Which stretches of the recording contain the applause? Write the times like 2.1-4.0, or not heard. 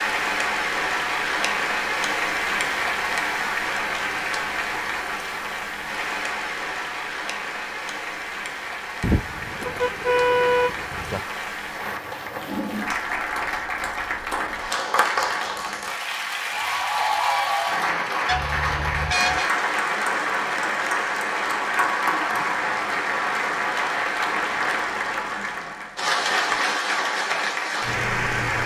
0.0-28.6.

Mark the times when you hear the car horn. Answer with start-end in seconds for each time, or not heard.
9.0-11.2, 18.2-19.6.